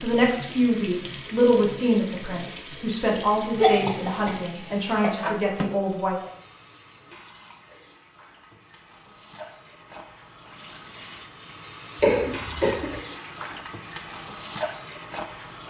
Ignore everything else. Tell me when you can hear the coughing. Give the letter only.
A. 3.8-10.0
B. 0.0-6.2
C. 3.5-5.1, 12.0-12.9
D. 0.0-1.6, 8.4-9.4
C.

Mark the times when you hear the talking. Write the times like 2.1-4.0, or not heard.
0.0-6.2.